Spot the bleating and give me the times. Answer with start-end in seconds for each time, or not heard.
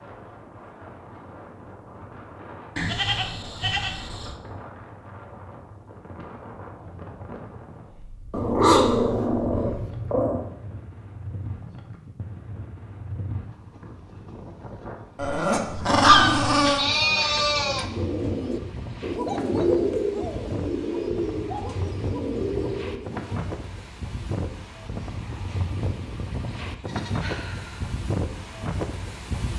2.8-4.3, 15.8-17.9, 26.6-28.1.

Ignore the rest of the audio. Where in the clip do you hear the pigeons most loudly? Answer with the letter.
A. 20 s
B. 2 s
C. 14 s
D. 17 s
A.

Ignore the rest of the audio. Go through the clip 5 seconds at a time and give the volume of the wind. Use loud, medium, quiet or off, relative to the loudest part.
medium, medium, medium, medium, loud, loud.